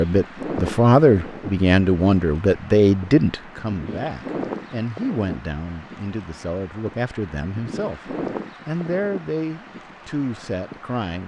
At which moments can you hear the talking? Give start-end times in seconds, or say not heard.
0.0-11.2.